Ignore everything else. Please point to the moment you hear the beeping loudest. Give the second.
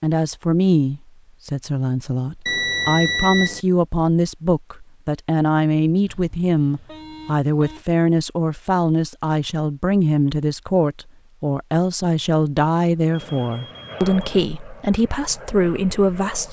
3 s.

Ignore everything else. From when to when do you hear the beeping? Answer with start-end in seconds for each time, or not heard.
2.5-3.6, 6.0-7.8, 13.1-14.2.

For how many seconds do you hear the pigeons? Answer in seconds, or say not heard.
not heard.